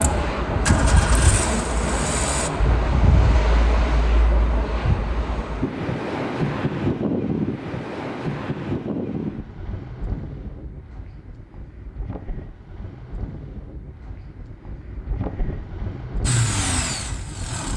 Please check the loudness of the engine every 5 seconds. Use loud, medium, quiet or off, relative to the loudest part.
loud, off, off, loud.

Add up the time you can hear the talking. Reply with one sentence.
The talking can't be heard in this clip.